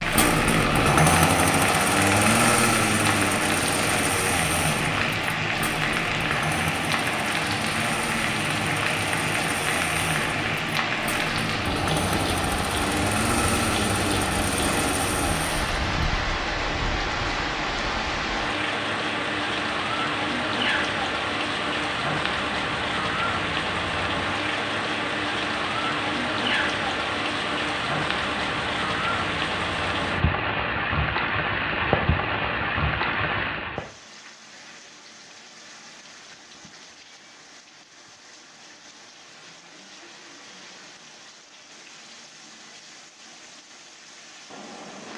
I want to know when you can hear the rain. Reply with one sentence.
The rain can be heard from 0.0 to 45.1 s.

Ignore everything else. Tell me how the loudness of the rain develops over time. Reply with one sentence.
The volume of the rain goes down.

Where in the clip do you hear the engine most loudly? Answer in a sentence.
The volume of the engine peaks at 1 second.